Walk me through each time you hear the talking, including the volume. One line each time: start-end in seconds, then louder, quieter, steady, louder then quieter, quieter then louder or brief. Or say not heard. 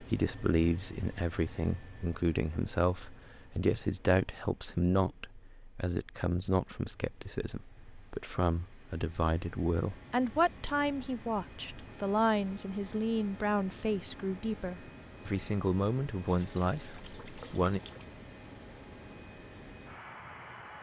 0.0-17.8 steady.